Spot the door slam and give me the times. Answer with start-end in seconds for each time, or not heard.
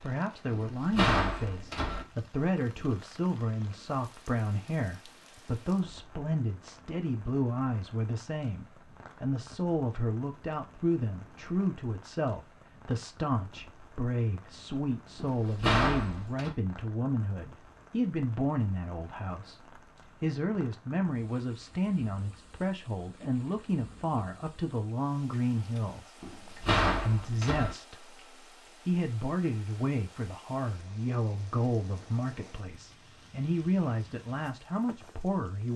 0.5-2.0, 15.2-16.5, 26.2-27.8.